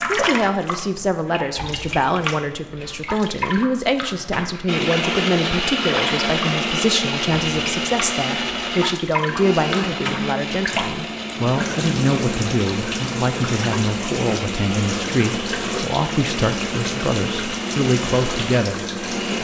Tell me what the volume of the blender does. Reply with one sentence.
The loudness of the blender goes down.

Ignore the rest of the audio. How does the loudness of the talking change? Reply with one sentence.
The volume of the talking stays about the same.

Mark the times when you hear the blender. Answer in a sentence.
The blender can be heard from 4.7 to 19.3 s.